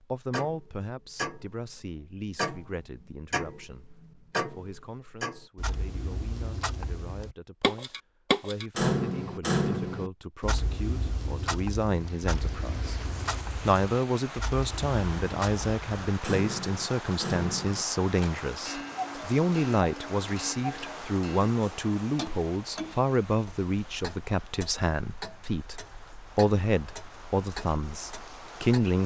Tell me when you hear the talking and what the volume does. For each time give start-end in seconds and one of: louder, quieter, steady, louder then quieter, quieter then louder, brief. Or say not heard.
0.1-29.0 louder.